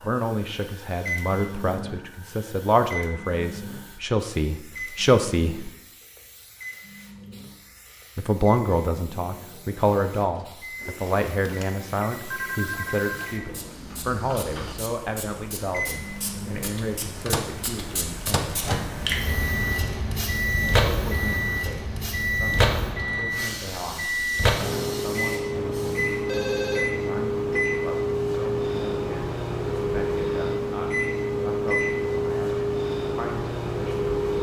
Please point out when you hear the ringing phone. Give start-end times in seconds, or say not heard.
10.8-13.3, 26.2-26.9.